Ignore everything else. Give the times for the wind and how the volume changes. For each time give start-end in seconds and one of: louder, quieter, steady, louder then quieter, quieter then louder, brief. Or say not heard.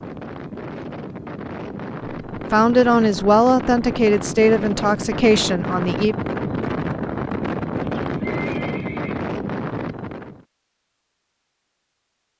0.0-10.4 louder.